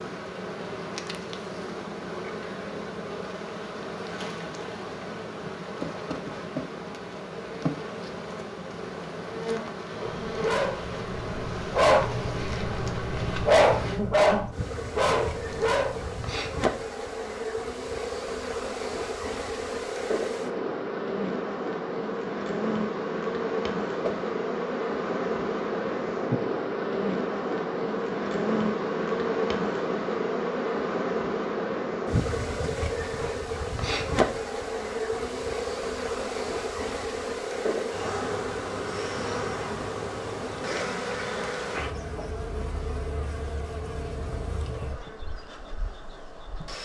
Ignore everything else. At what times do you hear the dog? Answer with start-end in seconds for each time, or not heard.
9.9-16.2.